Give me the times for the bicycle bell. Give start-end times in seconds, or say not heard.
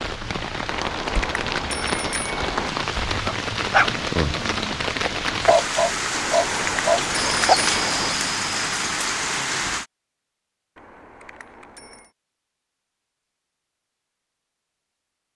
0.7-2.7, 6.1-8.2, 10.8-12.1.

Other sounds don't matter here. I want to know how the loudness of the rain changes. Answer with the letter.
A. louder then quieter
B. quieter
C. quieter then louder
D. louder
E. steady
E.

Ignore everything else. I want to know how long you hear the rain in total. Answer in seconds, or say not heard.
10 s.